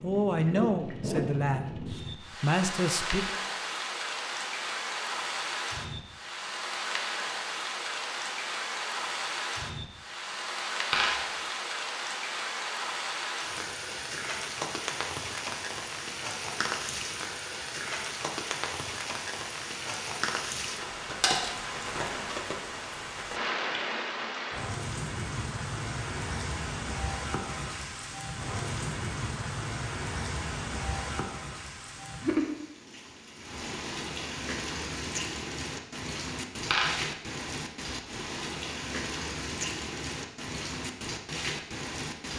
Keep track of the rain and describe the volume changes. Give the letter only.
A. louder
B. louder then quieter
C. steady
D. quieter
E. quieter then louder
C.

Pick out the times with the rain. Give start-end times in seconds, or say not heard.
0.0-42.3.